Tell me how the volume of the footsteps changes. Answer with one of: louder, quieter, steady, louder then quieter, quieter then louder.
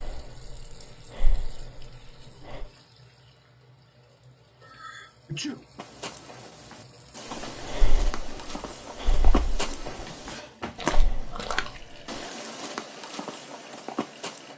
louder then quieter.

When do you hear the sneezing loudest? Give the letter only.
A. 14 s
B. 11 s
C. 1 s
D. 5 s
D.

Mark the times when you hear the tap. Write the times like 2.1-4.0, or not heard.
0.0-14.5.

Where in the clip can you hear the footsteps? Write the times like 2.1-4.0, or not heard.
5.8-14.5.